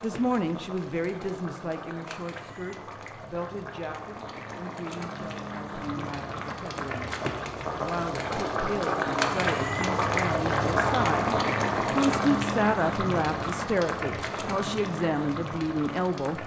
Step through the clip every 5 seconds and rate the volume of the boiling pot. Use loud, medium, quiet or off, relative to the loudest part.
quiet, loud, loud, medium.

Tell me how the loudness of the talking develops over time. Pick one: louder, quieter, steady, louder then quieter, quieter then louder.
quieter then louder.